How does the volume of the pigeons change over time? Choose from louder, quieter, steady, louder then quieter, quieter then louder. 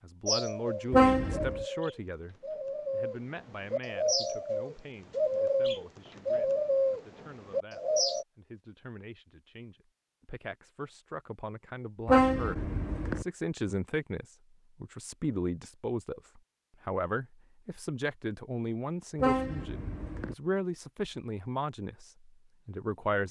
louder.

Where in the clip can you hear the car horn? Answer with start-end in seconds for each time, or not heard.
0.9-1.6, 12.1-13.2, 19.2-20.4.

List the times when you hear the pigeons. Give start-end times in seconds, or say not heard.
0.2-8.2.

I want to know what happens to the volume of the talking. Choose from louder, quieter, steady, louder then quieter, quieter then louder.
quieter then louder.